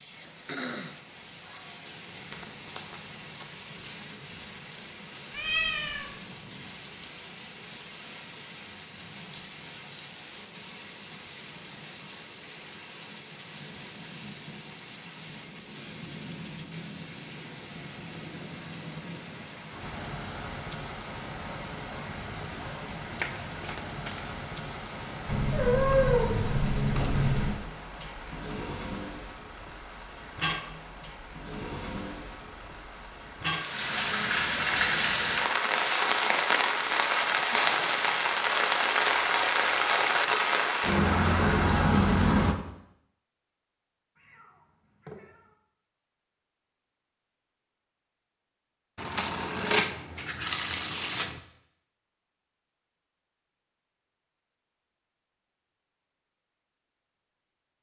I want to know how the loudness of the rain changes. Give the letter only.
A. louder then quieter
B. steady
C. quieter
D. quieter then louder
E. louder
E.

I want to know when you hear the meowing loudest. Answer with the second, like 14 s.
26 s.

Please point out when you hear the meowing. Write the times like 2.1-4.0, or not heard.
5.3-6.1, 25.2-27.6, 44.1-45.5.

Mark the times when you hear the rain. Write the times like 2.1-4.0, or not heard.
0.0-42.5.